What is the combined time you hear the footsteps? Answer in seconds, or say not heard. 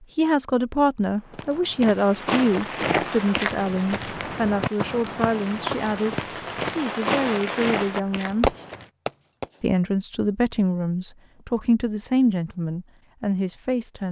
8 s.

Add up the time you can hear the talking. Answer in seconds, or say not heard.
13 s.